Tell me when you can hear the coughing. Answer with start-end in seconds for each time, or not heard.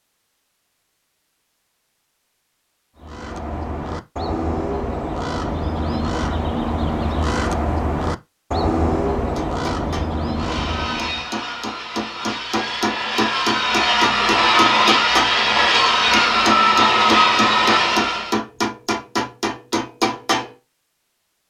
not heard.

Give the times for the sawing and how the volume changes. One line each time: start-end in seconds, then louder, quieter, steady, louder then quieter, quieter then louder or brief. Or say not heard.
10.3-18.4 louder.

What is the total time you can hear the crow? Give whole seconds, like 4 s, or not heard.
8 s.